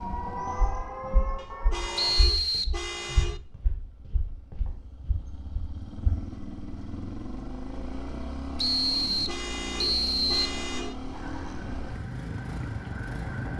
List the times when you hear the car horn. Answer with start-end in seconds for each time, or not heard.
1.4-3.4, 9.1-10.9.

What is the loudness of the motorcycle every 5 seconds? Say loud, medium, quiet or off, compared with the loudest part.
quiet, loud, loud.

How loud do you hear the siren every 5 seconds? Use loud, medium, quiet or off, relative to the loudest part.
loud, off, medium.